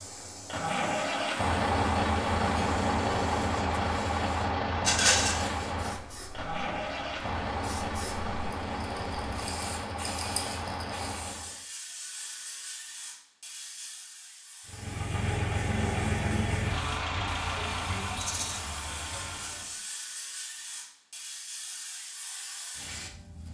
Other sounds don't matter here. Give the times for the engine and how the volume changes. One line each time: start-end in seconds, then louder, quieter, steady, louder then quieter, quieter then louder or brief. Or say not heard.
0.0-11.6 quieter
14.7-19.8 quieter.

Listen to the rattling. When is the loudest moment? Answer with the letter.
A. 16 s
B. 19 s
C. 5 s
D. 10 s
C.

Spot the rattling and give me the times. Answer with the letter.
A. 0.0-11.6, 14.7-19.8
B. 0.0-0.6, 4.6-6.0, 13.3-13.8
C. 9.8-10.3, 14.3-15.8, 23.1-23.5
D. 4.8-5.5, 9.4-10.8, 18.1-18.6
D.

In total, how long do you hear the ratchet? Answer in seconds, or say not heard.
not heard.